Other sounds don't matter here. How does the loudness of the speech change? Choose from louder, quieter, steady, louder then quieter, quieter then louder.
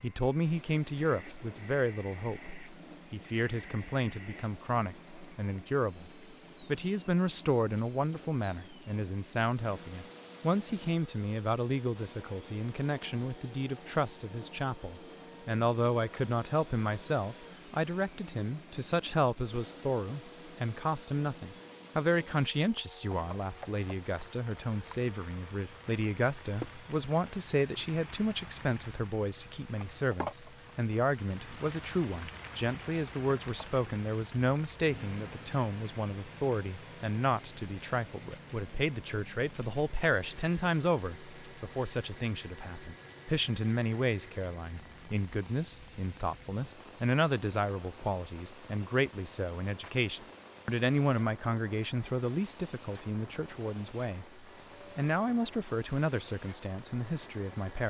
steady.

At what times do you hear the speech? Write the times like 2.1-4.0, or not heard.
0.0-57.8.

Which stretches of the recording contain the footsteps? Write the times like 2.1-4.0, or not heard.
not heard.